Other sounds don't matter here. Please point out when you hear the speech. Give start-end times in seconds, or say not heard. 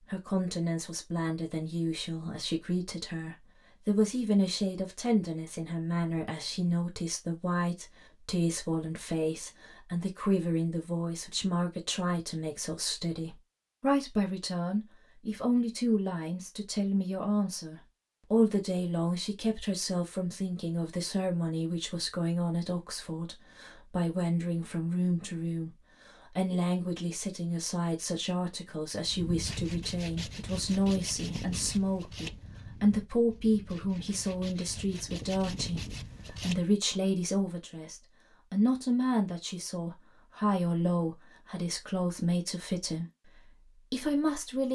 0.0-25.7, 26.3-44.7.